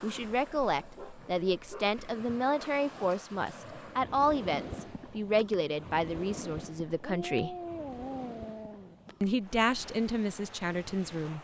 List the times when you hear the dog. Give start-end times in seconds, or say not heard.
0.2-2.0, 7.0-8.9.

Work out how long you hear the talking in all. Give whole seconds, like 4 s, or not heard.
10 s.